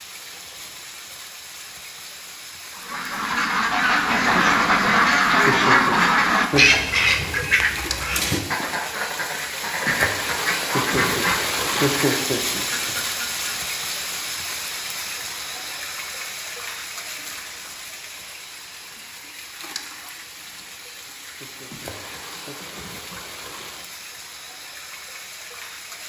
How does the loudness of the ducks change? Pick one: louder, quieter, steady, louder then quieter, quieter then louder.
quieter.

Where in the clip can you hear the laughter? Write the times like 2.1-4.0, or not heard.
5.5-6.8, 10.7-12.9, 21.4-22.6.